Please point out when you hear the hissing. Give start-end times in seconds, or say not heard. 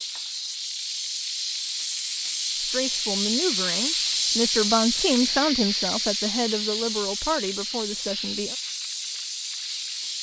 0.0-10.1.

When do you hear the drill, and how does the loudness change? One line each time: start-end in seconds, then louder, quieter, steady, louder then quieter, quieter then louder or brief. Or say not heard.
not heard.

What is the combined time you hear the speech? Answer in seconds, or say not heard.
6 s.